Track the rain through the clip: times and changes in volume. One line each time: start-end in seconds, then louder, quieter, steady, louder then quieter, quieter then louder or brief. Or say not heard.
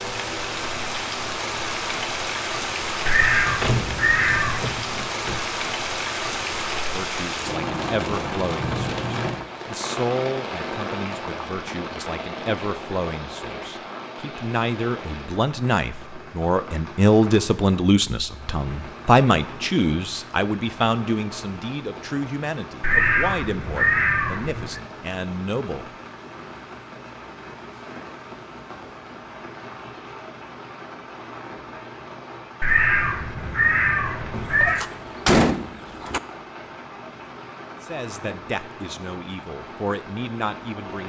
0.0-41.0 quieter.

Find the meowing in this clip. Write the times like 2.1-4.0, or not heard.
3.0-4.8, 22.8-24.8, 32.6-34.9.